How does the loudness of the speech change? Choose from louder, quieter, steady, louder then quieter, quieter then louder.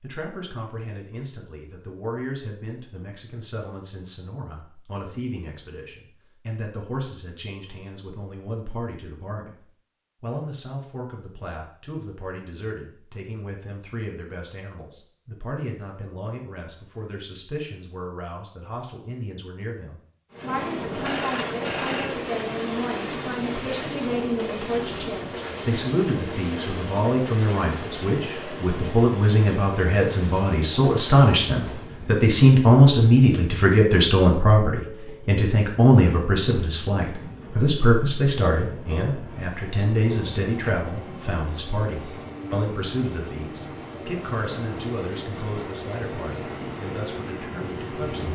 louder then quieter.